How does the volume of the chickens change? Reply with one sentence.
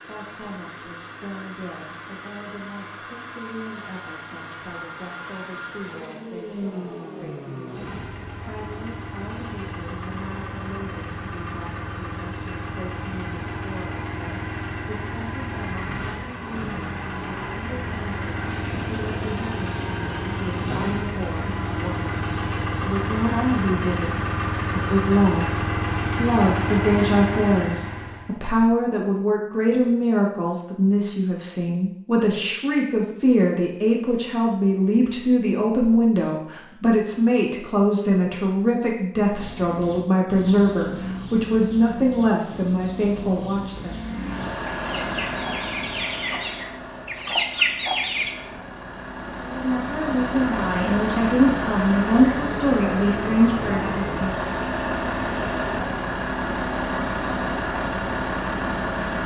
The loudness of the chickens goes up.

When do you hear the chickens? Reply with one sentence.
You can hear the chickens from 39.2 to 48.4 s.